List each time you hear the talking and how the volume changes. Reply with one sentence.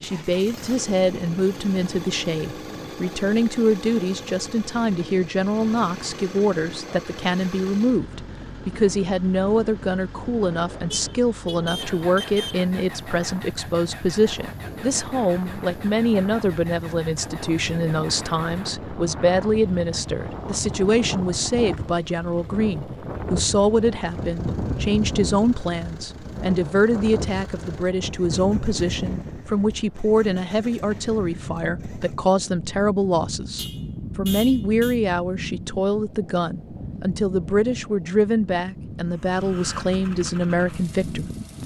The talking can be heard from 0.0 to 41.2 s, at a steady volume.